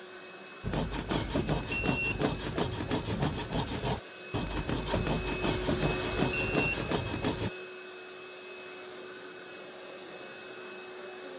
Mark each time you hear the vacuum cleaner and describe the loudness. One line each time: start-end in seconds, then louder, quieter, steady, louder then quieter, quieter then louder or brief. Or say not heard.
0.0-11.3 louder then quieter.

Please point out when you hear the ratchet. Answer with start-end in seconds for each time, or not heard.
not heard.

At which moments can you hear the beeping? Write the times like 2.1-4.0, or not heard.
1.7-2.2, 6.3-6.8.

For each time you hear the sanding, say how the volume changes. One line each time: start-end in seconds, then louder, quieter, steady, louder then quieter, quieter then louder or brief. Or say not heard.
0.6-7.5 steady.